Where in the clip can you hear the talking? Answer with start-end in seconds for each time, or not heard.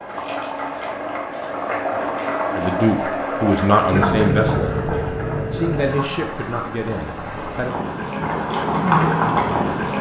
2.5-7.8.